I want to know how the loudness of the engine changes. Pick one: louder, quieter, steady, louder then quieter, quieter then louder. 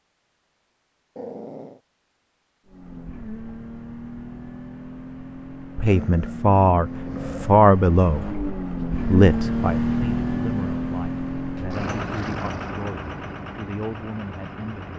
louder then quieter.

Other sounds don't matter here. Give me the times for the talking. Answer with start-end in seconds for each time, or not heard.
5.8-14.9.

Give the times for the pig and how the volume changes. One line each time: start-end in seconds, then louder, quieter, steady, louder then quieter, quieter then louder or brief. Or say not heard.
not heard.